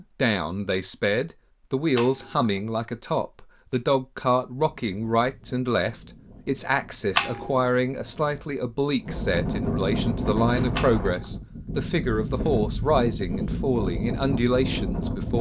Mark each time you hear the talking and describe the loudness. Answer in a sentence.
The talking can be heard from 0.0 to 15.3 s, at a steady volume.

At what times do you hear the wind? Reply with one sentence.
The wind can be heard from 4.8 to 15.3 s.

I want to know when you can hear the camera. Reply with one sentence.
The camera can be heard from 1.9 to 2.5 s, from 7.2 to 7.7 s and from 10.8 to 11.2 s.